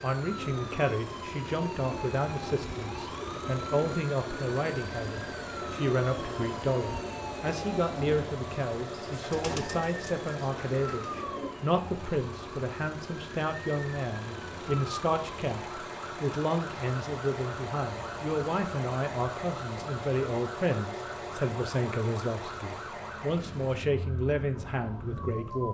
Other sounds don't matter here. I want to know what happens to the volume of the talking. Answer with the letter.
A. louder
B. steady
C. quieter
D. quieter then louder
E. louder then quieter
B.